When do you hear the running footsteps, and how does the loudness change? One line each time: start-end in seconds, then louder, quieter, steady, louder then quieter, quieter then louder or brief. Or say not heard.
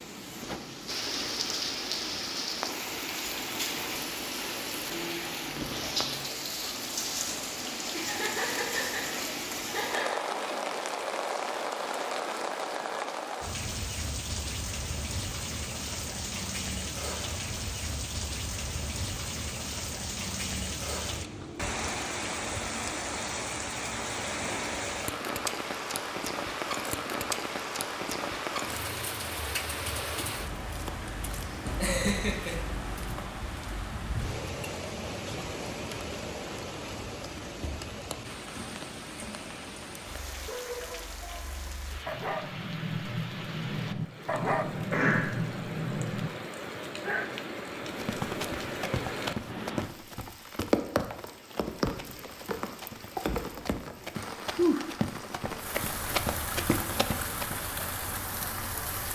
47.8-57.5 quieter then louder.